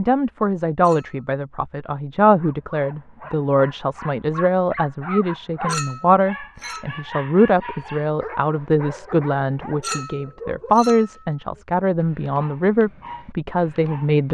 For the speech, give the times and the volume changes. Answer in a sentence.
You can hear the speech from 0.0 to 14.2 s, at a steady volume.